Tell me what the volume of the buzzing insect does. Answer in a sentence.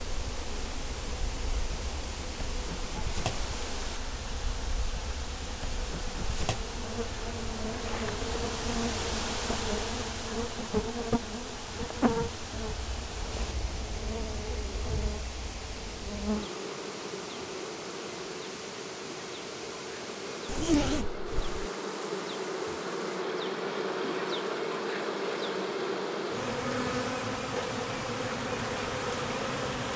The loudness of the buzzing insect goes up.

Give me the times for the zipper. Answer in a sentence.
You can hear the zipper from 20.4 to 21.6 s.